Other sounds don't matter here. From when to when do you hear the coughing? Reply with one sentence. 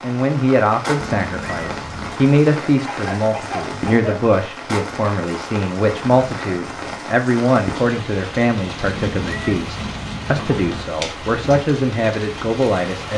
The coughing can be heard from 2.9 to 4.3 s.